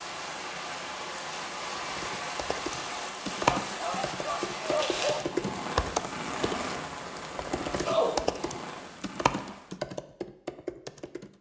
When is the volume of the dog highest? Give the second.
5 s.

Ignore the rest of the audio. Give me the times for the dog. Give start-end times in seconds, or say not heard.
3.6-5.2.